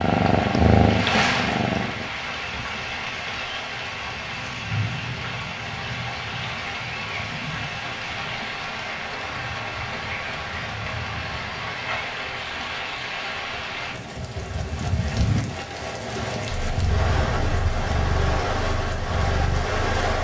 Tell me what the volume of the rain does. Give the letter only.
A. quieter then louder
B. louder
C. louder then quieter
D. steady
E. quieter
D.